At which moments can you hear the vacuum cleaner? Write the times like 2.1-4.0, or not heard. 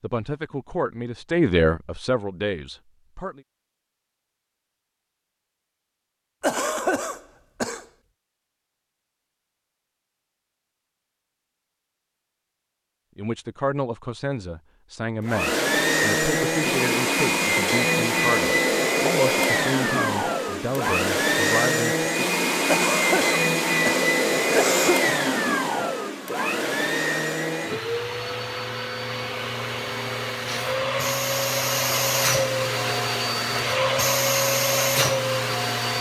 15.2-35.9.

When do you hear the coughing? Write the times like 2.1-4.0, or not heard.
6.4-7.8, 22.6-25.1.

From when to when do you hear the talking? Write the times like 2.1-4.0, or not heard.
0.0-3.4, 13.2-22.1.